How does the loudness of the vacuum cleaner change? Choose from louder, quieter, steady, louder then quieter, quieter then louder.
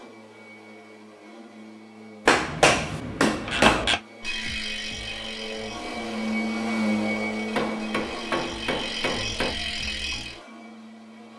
louder then quieter.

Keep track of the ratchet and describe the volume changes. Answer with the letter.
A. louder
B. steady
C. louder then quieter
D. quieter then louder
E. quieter
D.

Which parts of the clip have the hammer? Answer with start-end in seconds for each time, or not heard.
2.2-3.9, 7.5-9.6.